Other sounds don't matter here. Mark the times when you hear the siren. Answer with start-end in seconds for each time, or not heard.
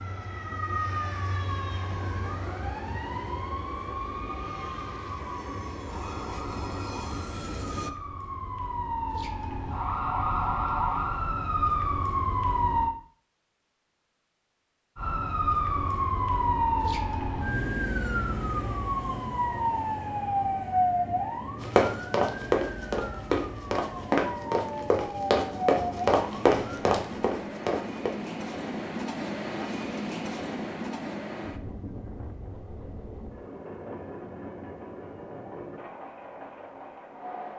0.0-12.9, 14.9-26.9.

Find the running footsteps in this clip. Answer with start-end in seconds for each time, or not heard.
21.6-28.1.